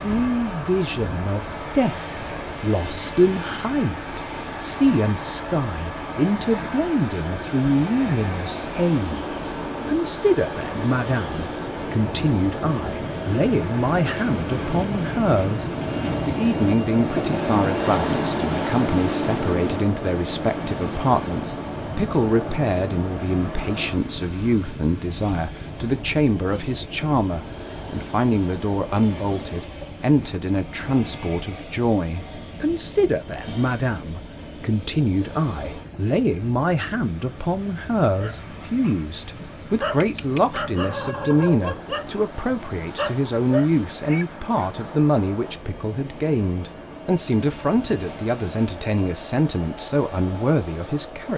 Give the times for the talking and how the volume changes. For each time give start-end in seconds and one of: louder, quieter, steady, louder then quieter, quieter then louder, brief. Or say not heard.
0.0-51.3 steady.